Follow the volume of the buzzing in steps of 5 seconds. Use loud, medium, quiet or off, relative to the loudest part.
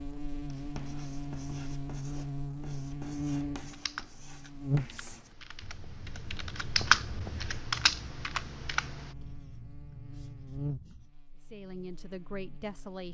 loud, quiet, medium.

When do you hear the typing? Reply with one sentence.
You can hear the typing from 3.7 to 9.1 s.